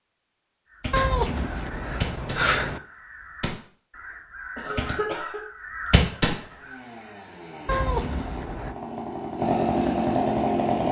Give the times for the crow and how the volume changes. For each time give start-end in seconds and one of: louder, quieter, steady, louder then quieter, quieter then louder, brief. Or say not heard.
0.7-6.4 quieter then louder.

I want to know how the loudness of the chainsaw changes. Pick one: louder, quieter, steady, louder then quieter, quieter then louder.
louder.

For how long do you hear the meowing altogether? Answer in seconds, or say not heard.
3 s.